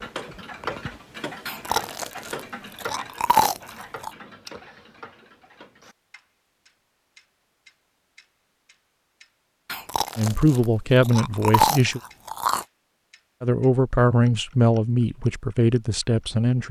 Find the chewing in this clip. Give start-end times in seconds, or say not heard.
1.4-4.1, 9.7-12.7.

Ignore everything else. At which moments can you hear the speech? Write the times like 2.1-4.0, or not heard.
10.2-12.0, 13.4-16.6.